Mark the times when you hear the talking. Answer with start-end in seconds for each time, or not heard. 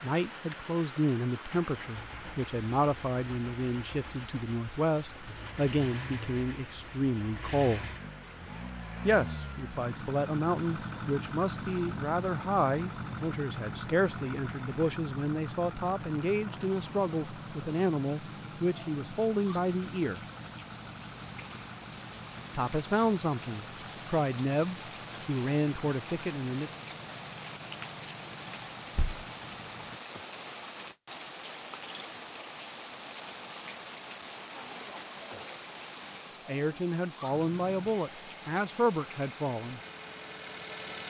0.0-7.9, 9.1-20.2, 22.6-26.7, 36.5-39.8.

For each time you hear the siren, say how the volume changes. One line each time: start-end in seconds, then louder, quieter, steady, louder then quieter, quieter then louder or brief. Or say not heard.
not heard.